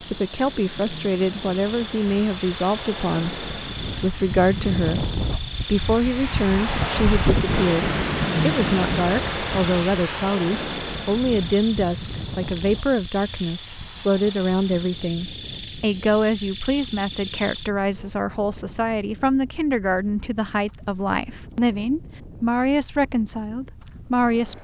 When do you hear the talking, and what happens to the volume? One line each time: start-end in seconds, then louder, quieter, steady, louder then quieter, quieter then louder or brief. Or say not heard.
0.0-24.5 steady.